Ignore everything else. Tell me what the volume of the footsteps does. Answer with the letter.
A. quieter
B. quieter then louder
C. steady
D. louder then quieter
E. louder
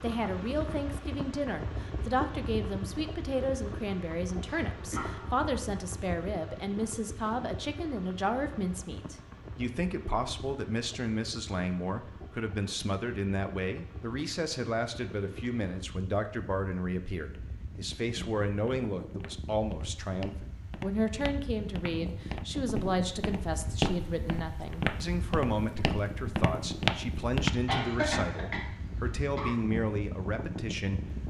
E.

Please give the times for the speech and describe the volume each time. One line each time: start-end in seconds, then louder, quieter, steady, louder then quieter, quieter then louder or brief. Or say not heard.
0.0-31.2 steady.